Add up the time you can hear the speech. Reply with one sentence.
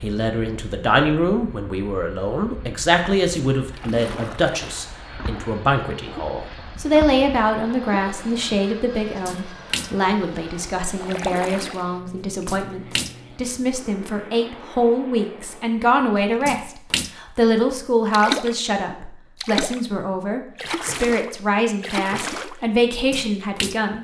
You can hear the speech for 24 seconds altogether.